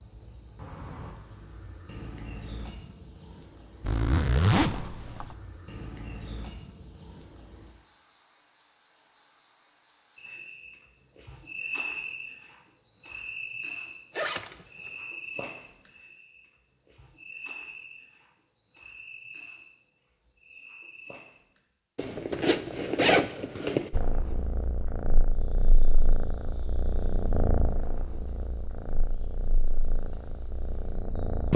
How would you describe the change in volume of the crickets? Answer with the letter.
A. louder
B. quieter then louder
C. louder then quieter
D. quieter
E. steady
D.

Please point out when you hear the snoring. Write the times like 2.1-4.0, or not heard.
not heard.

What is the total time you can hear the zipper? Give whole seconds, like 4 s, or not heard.
4 s.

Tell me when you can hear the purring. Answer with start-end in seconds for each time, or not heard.
23.9-31.5.